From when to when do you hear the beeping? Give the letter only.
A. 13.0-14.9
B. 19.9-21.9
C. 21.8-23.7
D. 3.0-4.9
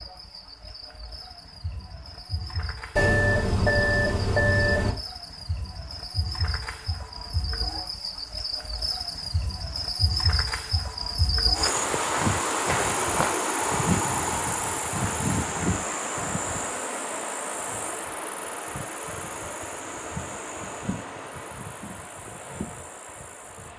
D.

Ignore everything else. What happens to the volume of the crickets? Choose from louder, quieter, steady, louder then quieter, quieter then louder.
louder then quieter.